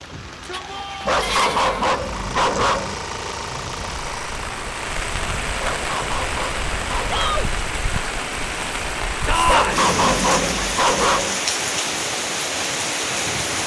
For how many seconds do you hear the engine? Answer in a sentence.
You can hear the engine for 11 seconds altogether.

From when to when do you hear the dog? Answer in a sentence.
You can hear the dog from 1.1 to 3.0 s, from 5.5 to 7.5 s and from 9.4 to 11.4 s.